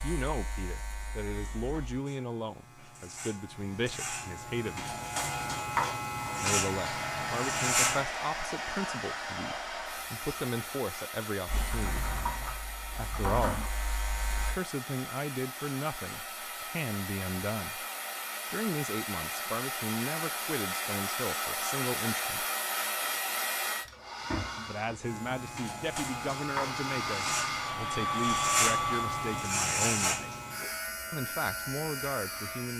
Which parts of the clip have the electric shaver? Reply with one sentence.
The electric shaver can be heard from 0.0 to 8.1 s, from 11.4 to 14.6 s and from 25.0 to 32.7 s.